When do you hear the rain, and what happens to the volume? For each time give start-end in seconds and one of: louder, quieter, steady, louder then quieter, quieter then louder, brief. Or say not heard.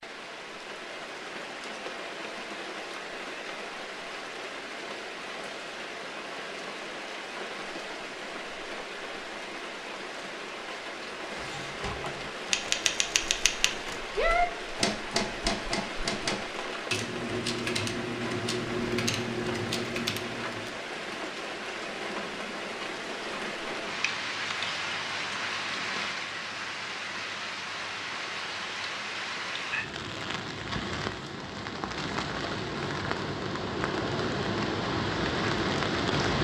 0.0-36.4 louder.